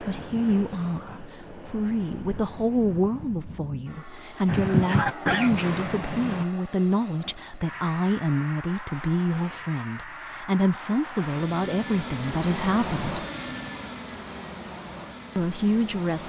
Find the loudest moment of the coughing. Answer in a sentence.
The volume of the coughing peaks at 5 seconds.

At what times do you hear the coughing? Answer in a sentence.
You can hear the coughing from 4.5 to 6.5 s.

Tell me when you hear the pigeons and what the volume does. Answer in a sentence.
The pigeons can't be heard in this clip.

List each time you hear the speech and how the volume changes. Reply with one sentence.
You can hear the speech from 0.0 to 13.2 s, at a steady volume; and briefly from 15.3 to 16.2 s.